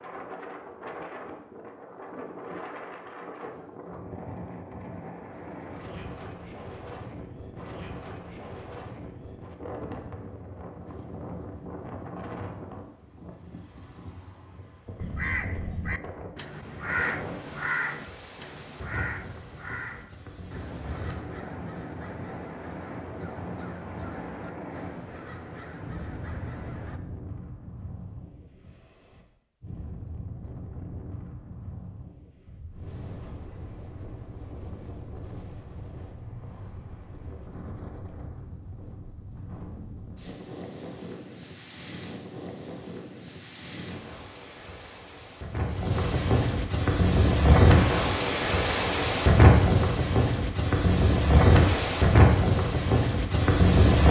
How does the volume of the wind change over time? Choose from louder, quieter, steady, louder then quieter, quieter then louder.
louder.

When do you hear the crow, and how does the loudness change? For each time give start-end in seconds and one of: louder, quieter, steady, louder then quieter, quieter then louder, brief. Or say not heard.
14.9-27.0 quieter.